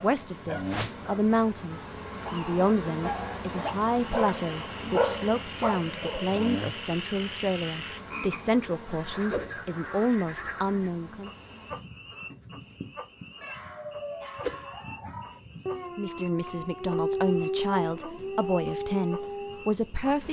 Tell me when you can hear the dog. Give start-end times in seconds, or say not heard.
0.0-6.5, 13.4-19.7.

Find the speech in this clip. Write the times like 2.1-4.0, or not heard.
0.0-11.3, 15.9-20.2.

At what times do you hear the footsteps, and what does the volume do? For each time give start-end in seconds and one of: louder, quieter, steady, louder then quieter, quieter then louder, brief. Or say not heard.
not heard.